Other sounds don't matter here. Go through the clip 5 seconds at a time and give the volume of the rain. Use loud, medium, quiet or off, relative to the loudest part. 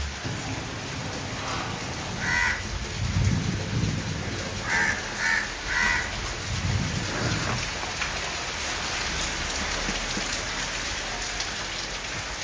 medium, loud, loud.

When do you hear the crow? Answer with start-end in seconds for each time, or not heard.
2.1-7.7.